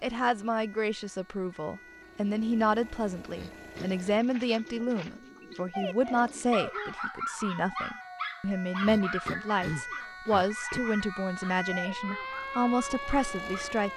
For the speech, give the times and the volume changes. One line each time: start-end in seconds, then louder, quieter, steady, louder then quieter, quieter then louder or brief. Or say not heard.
0.0-13.9 steady.